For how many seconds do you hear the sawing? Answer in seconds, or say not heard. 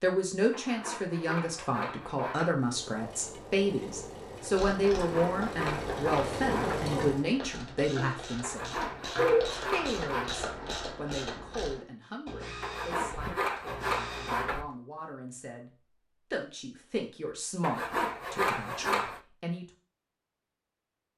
10 s.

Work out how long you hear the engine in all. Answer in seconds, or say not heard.
5 s.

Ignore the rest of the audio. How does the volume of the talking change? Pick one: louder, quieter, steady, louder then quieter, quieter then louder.
quieter then louder.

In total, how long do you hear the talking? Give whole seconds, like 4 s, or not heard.
20 s.